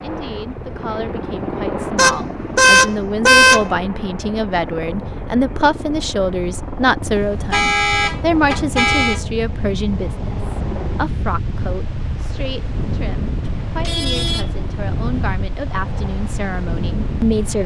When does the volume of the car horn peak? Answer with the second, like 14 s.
3 s.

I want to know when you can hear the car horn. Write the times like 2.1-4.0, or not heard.
1.9-3.6, 7.5-9.2, 13.5-15.3.